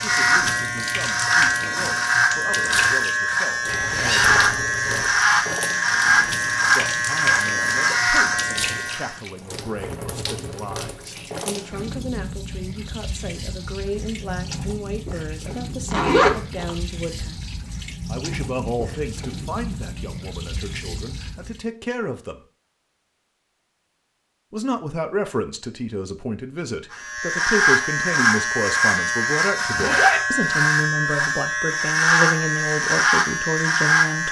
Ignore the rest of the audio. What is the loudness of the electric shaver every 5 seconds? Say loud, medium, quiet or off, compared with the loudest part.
loud, loud, off, off, off, loud, loud.